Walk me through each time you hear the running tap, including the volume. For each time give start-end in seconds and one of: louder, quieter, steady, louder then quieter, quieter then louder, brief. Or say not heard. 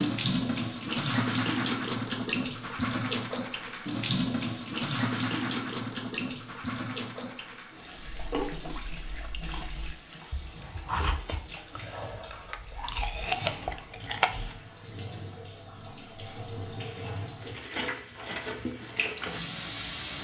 0.0-20.1 quieter then louder.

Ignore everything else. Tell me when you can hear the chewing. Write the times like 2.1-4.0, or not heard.
8.1-14.6.